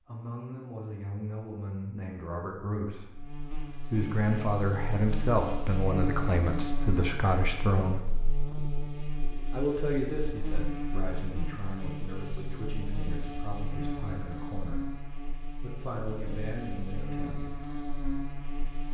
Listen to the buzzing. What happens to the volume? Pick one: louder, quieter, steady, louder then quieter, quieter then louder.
steady.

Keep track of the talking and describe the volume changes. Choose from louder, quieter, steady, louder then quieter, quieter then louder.
louder then quieter.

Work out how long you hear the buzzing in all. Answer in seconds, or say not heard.
16 s.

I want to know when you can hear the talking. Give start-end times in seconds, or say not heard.
0.1-8.1, 9.5-17.4.